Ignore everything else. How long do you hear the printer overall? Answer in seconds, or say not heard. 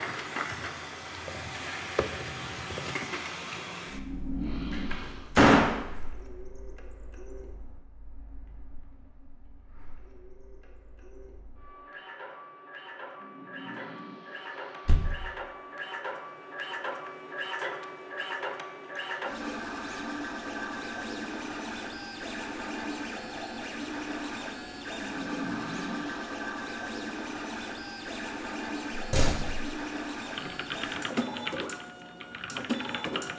33 s.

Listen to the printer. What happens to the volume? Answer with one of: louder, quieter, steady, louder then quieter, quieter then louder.
quieter then louder.